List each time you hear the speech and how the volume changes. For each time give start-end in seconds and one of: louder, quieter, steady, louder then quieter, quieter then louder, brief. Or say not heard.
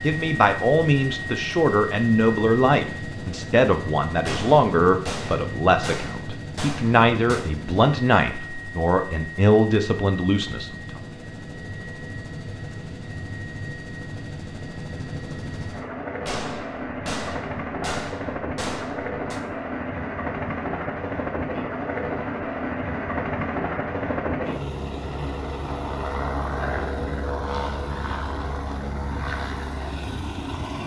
0.0-11.0 steady.